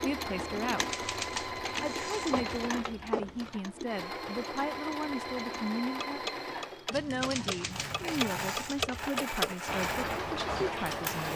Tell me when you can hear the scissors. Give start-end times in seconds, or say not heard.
2.3-3.6, 6.9-8.5.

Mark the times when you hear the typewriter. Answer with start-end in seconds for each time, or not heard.
0.8-2.7, 7.2-9.1.